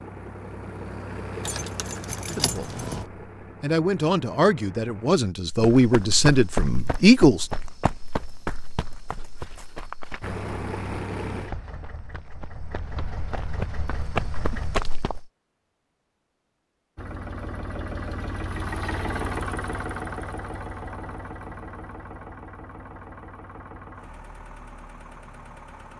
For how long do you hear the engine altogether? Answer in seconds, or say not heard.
19 s.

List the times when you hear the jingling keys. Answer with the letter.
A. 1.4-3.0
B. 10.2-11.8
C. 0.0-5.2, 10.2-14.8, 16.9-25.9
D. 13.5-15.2
A.